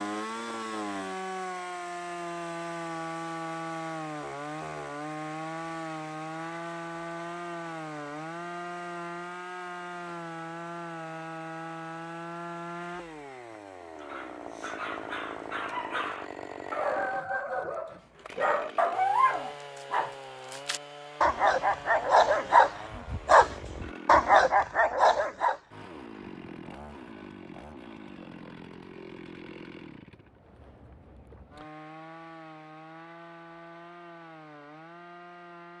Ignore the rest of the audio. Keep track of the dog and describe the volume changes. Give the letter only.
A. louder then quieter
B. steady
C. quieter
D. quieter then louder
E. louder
E.